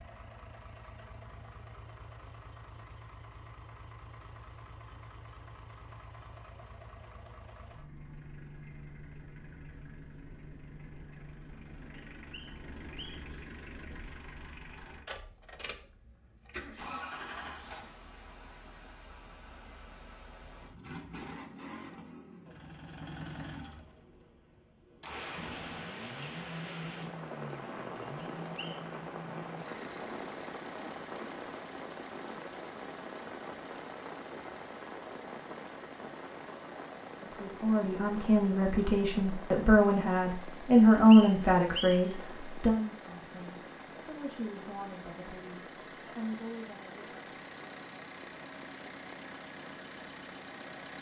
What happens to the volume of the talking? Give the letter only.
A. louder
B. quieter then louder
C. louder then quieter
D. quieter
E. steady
C.